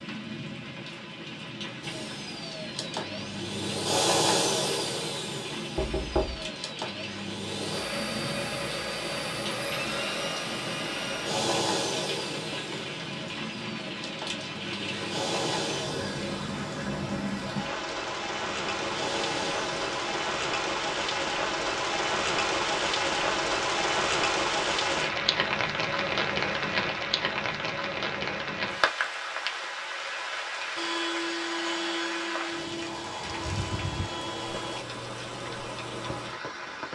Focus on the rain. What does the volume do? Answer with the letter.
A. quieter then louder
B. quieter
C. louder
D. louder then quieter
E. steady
D.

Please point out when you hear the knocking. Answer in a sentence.
The knocking can be heard from 5.8 to 6.4 s.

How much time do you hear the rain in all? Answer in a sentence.
You can hear the rain for 37 seconds altogether.